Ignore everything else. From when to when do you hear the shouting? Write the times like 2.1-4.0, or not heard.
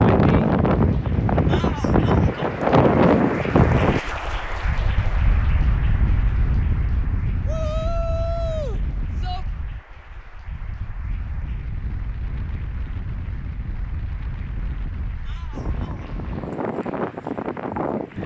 1.4-2.5, 7.5-9.4, 15.2-16.1.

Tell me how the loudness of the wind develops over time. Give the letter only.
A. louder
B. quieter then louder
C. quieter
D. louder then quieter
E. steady
B.